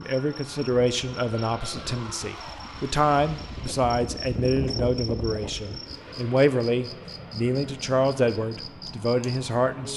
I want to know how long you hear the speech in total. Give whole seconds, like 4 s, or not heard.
10 s.